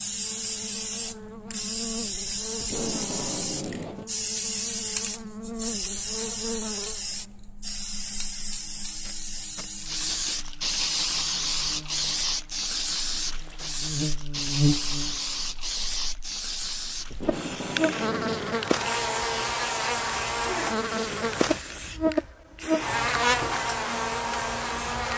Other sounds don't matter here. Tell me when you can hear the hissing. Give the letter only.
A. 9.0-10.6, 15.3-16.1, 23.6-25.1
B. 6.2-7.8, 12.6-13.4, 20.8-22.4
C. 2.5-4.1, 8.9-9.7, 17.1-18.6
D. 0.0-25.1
D.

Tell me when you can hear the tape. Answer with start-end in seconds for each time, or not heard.
2.5-4.1, 8.9-9.7, 17.1-18.6.